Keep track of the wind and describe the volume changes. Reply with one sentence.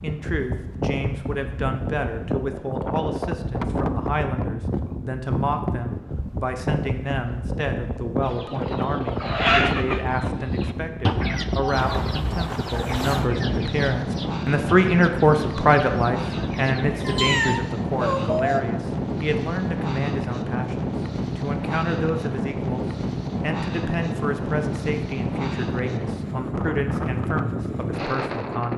The loudness of the wind stays about the same.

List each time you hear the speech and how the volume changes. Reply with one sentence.
You can hear the speech from 0.0 to 28.7 s, getting louder then quieter.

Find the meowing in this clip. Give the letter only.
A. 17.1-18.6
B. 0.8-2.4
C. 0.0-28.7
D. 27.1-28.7
A.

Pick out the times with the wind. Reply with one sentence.
The wind can be heard from 0.0 to 28.7 s.